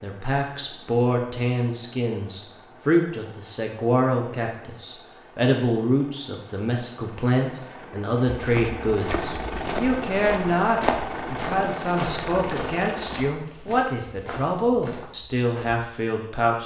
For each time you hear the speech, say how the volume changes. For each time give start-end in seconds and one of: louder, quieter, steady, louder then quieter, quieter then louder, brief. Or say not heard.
0.0-16.6 steady.